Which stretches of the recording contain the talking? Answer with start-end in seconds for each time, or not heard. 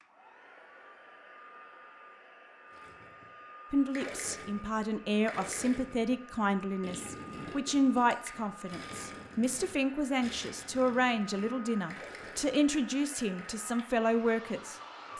3.7-15.1.